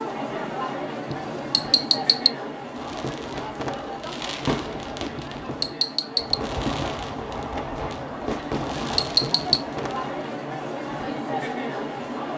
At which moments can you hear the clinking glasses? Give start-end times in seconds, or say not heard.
1.1-2.3, 5.2-6.3, 8.8-9.7.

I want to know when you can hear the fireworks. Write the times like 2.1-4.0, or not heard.
2.8-10.1.